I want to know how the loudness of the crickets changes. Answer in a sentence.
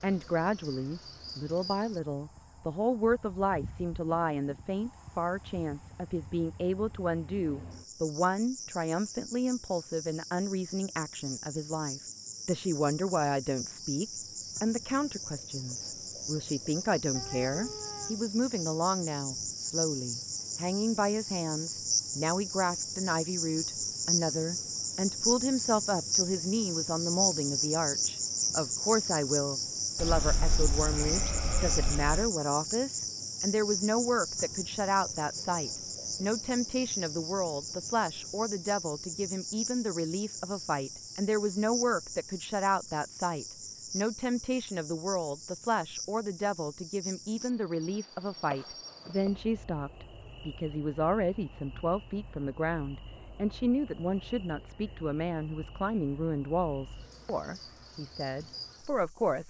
The loudness of the crickets goes up, then down.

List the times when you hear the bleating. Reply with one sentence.
The bleating can be heard from 29.9 to 32.3 s.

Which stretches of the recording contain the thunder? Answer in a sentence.
The thunder can't be heard in this clip.